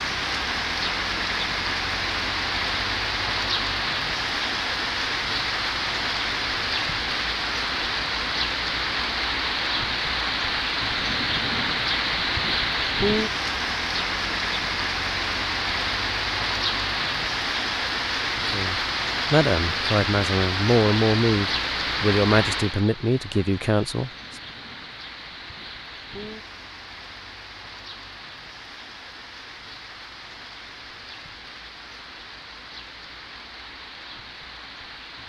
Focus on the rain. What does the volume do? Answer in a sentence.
The loudness of the rain goes down.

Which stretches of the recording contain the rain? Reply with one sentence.
You can hear the rain from 0.0 to 35.2 s.